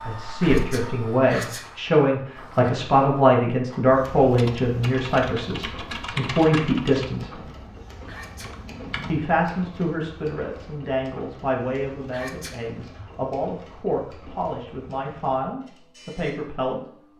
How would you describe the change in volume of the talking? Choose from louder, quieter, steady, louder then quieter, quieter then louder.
quieter.